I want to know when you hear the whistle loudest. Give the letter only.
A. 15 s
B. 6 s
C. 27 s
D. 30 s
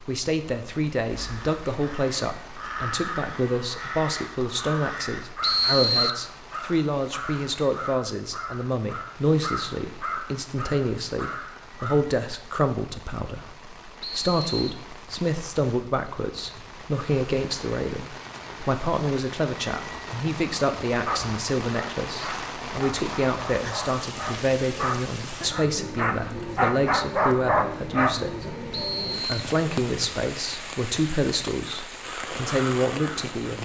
B.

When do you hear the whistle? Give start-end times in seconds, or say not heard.
5.4-6.2, 14.0-14.8, 28.7-29.3.